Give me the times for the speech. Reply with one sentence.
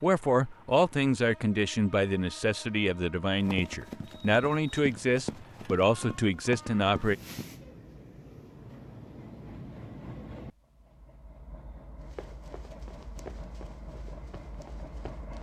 You can hear the speech from 0.0 to 7.2 s.